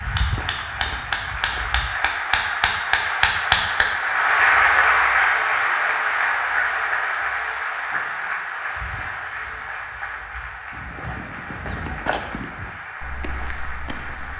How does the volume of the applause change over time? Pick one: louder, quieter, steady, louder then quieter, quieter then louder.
louder then quieter.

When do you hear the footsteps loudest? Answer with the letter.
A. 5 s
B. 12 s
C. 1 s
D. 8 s
B.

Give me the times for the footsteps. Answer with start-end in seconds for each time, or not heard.
0.0-1.9, 8.8-14.3.